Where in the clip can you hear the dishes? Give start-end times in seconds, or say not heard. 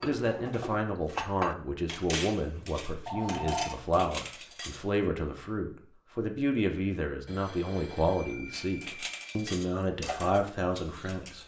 0.0-5.0, 8.5-11.4.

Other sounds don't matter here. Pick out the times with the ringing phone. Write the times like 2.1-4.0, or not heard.
3.0-3.7, 7.2-9.4.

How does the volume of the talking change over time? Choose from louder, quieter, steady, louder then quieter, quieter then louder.
steady.